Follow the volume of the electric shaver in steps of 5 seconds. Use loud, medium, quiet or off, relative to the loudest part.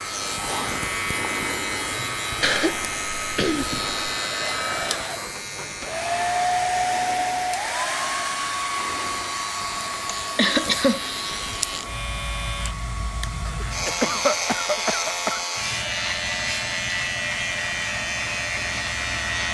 loud, medium, loud, loud.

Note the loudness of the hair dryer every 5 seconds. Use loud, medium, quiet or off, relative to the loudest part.
medium, loud, medium, medium.